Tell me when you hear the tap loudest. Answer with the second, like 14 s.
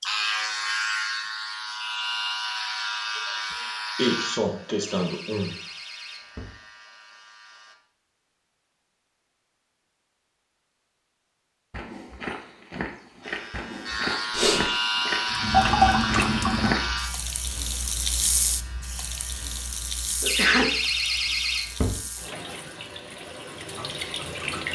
16 s.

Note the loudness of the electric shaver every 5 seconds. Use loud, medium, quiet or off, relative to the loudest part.
loud, quiet, loud, loud, quiet.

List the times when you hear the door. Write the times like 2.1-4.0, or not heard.
4.8-6.5, 20.2-22.0.